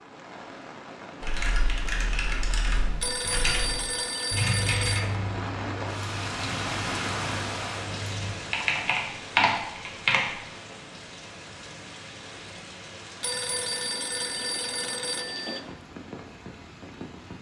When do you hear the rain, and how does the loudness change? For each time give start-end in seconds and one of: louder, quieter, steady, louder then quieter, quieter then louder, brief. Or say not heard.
0.0-17.3 louder then quieter.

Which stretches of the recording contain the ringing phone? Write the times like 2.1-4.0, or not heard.
3.0-5.1, 13.2-15.6.